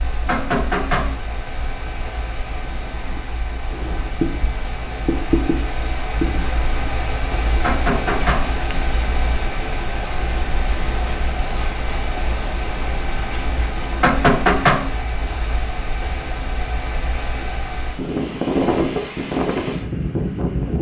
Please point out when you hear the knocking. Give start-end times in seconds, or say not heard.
0.2-1.1, 7.6-8.5, 14.0-14.8.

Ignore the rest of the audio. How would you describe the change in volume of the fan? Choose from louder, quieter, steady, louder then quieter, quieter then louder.
louder.